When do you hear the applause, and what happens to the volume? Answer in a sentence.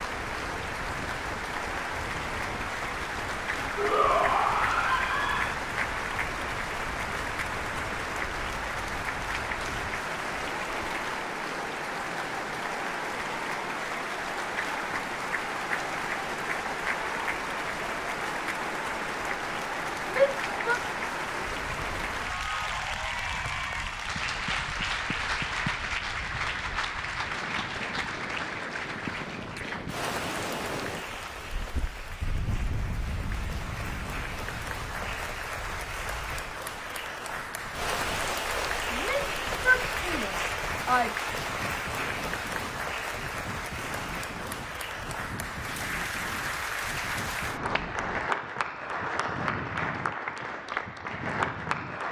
The applause can be heard from 0.0 to 52.0 s, at a steady volume.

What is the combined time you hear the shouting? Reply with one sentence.
You can hear the shouting for 5 seconds altogether.